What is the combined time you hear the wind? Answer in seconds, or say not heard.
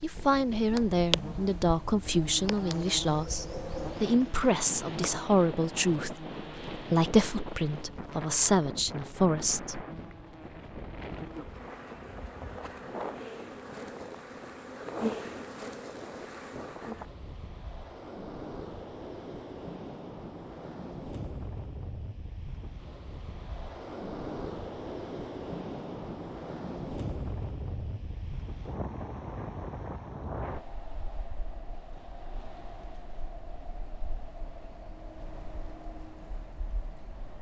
37 s.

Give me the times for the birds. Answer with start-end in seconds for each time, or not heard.
not heard.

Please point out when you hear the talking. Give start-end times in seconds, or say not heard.
0.0-9.8.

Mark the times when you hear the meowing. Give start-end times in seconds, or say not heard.
not heard.